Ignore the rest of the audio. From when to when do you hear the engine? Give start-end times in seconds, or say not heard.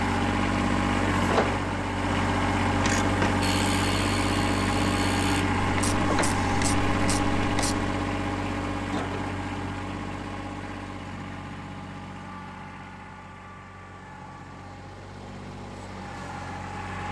0.0-17.0.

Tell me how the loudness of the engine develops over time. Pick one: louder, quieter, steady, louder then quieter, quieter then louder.
quieter.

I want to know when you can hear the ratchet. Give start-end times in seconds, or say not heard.
2.7-7.9.